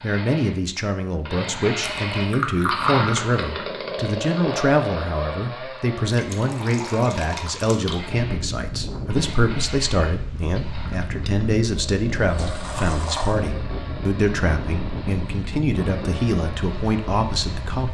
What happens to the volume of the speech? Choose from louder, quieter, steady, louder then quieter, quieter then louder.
steady.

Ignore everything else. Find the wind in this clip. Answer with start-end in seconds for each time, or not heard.
8.0-17.8.